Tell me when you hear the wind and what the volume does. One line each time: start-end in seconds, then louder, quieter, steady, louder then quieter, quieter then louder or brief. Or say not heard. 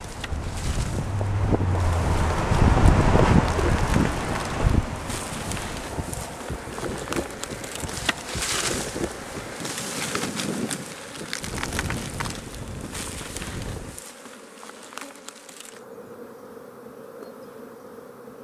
0.0-14.0 quieter.